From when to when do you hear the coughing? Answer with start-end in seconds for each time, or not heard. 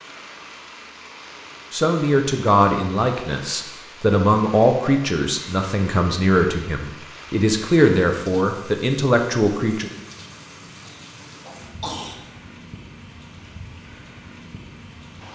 10.8-12.2.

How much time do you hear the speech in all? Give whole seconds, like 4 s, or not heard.
8 s.